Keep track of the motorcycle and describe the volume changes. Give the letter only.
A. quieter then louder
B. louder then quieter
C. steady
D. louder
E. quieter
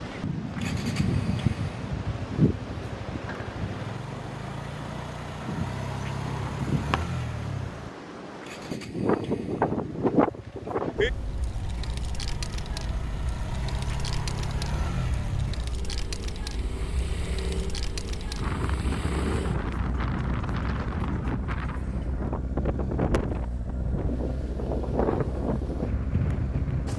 C.